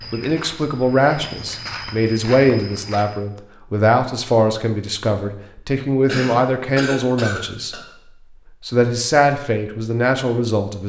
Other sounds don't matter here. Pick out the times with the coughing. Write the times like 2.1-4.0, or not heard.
6.0-7.8.